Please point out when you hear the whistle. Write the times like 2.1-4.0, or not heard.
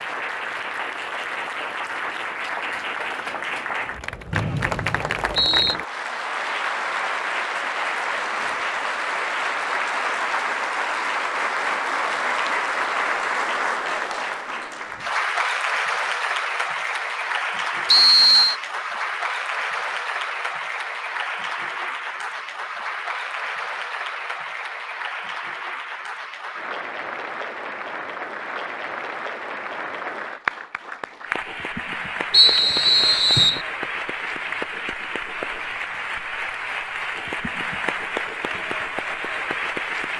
4.3-5.8, 17.9-18.6, 32.3-33.6.